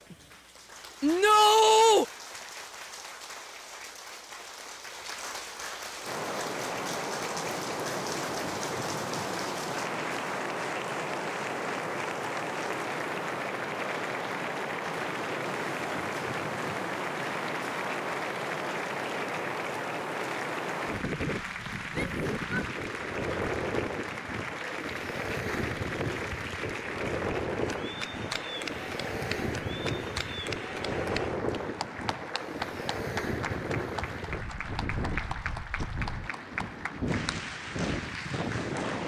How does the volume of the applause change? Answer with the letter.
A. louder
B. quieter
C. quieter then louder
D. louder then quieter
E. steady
E.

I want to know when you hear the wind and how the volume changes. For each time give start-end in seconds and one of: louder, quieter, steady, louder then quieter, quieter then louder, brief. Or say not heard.
6.0-39.0 steady.